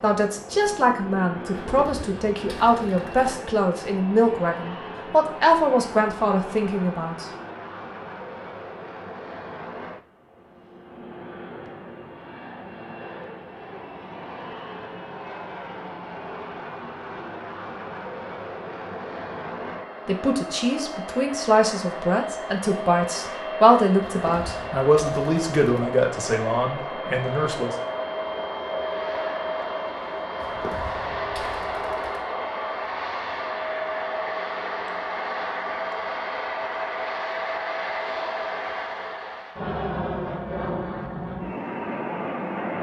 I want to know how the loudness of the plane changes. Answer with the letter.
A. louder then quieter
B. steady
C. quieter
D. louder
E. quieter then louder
D.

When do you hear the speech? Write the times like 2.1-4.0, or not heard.
0.0-7.2, 20.1-27.8.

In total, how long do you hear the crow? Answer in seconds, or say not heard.
not heard.